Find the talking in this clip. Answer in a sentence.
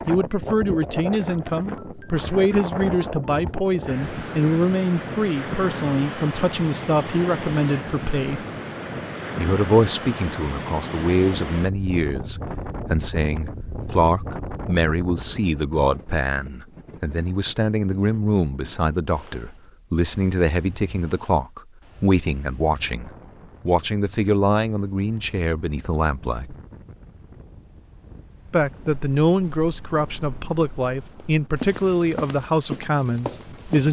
You can hear the talking from 0.1 to 8.4 s, from 9.3 to 26.6 s and from 28.5 to 33.8 s.